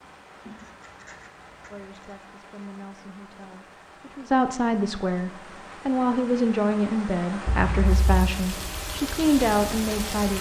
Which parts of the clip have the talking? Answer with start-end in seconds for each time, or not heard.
1.7-10.3.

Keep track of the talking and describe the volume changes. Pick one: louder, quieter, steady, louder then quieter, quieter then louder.
louder.